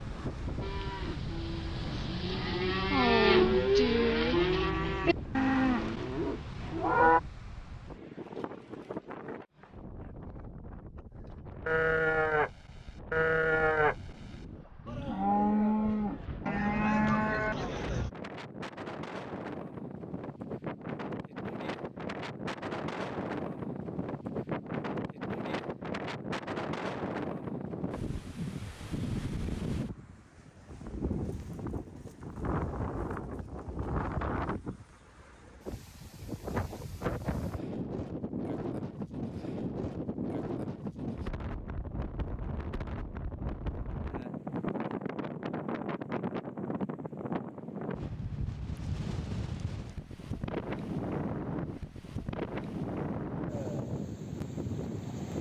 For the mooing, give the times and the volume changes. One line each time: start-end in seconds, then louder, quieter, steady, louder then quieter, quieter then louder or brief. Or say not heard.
0.6-7.2 louder then quieter
11.7-18.1 steady.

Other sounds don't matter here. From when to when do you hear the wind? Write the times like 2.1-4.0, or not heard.
0.0-55.3.